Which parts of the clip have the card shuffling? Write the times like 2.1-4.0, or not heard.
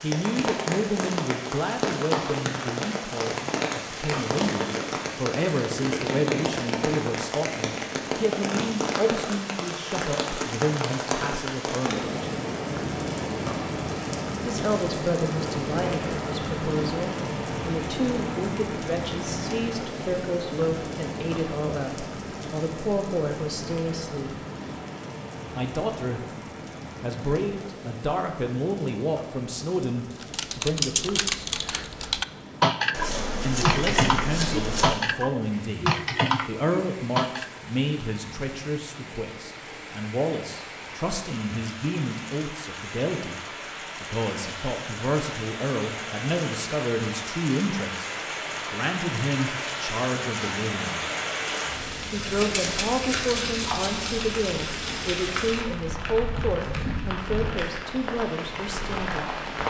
4.0-4.4, 32.9-35.0, 52.2-54.1.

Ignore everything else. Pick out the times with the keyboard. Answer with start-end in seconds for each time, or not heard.
30.1-37.5.